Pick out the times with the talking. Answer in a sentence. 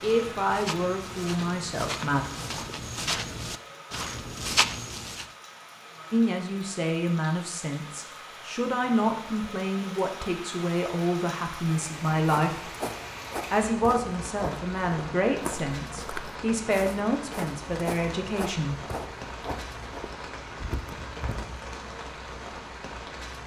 You can hear the talking from 0.0 to 2.2 s, from 6.1 to 12.7 s and from 13.5 to 18.8 s.